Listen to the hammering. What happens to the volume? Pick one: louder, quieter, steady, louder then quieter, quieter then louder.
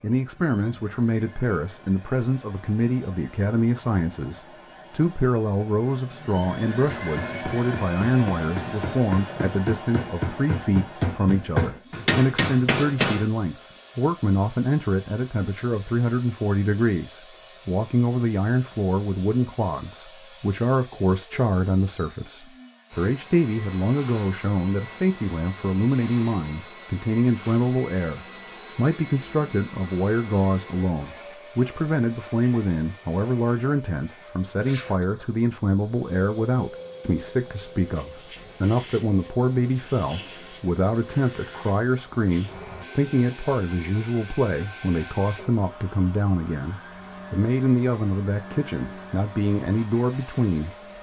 louder.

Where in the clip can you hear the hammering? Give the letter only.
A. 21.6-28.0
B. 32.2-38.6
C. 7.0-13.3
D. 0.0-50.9
C.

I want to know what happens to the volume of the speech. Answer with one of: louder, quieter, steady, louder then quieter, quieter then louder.
steady.